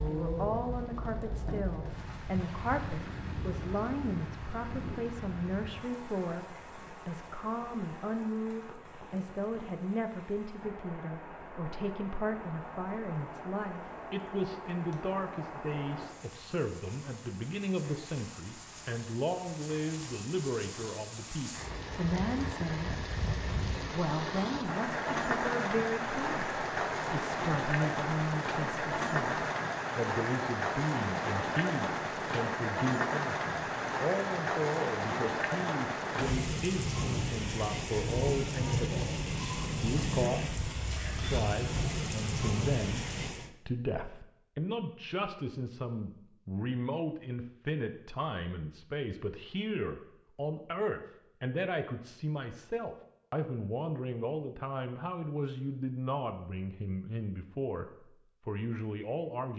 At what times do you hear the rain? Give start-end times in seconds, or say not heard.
0.0-43.5.